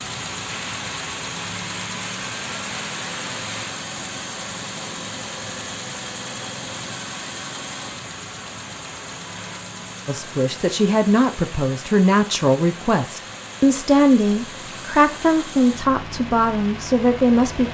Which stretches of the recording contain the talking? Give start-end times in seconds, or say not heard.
10.1-17.7.